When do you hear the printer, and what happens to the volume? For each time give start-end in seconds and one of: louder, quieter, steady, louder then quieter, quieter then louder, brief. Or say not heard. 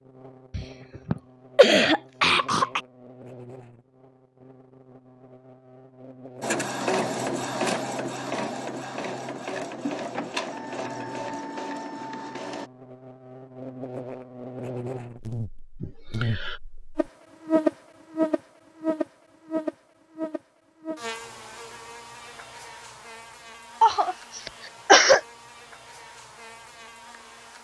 6.4-12.7 quieter.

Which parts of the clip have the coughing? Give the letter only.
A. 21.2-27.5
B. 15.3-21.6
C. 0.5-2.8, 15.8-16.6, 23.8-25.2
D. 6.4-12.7
C.